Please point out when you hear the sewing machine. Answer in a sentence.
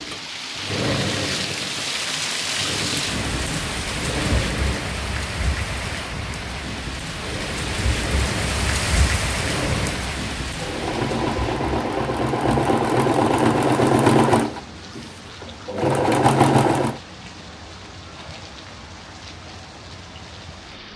You can hear the sewing machine from 0.0 to 5.0 s and from 7.1 to 17.0 s.